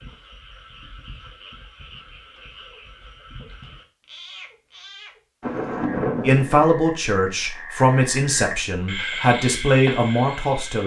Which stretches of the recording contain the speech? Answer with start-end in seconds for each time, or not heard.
6.2-10.8.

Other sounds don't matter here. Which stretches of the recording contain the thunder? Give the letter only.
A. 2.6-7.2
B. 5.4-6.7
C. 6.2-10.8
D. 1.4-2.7
B.